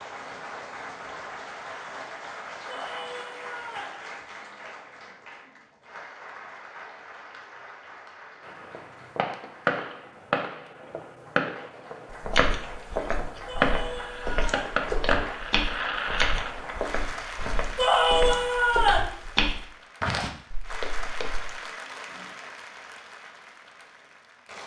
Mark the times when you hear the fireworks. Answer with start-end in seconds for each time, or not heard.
8.4-16.8.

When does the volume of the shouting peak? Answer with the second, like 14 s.
18 s.